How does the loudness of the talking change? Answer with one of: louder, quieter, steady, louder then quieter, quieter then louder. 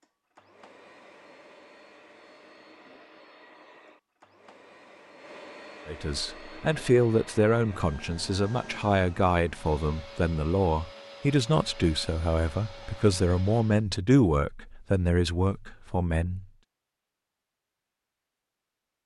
steady.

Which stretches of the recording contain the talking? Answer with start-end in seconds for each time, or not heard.
5.8-16.4.